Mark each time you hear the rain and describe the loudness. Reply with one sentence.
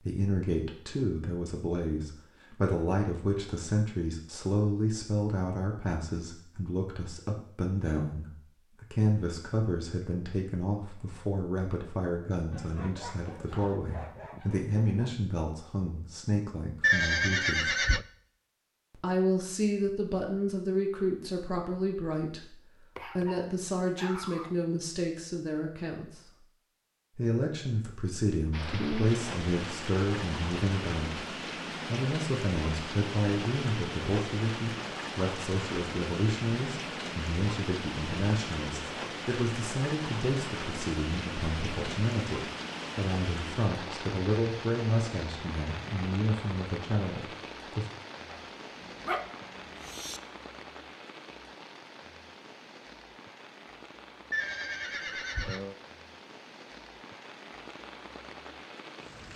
The rain can be heard from 28.5 to 59.3 s, getting quieter.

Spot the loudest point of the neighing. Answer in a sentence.
The volume of the neighing peaks at 17 seconds.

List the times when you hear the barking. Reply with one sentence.
The barking can be heard from 12.5 to 15.2 s, from 22.9 to 24.6 s and from 48.3 to 50.2 s.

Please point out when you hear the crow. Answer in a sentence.
You can't hear the crow here.